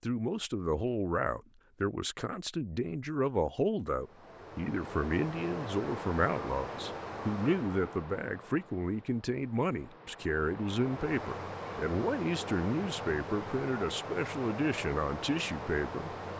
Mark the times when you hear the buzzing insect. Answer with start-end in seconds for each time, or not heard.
not heard.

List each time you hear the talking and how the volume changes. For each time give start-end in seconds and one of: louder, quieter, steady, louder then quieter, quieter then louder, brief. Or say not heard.
0.0-16.1 steady.